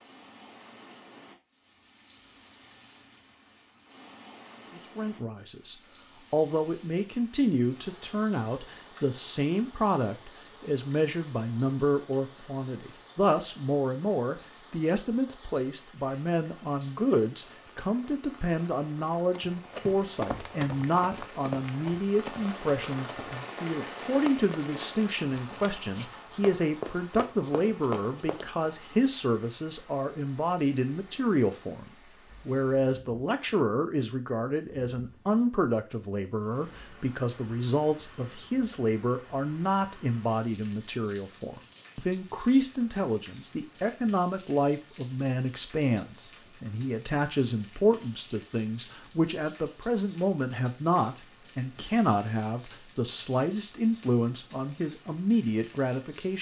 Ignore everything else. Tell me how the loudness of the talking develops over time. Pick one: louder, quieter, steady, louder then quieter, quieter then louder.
steady.